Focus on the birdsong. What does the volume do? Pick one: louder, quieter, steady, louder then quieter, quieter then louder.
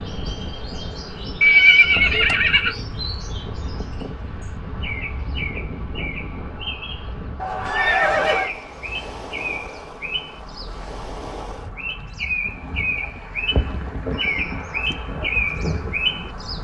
louder.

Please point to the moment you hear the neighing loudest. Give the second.
2 s.